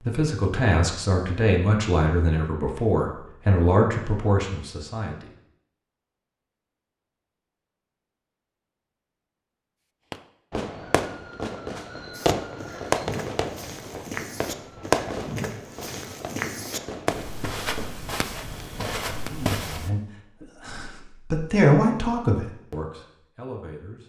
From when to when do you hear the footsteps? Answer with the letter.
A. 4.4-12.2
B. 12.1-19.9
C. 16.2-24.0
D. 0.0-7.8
B.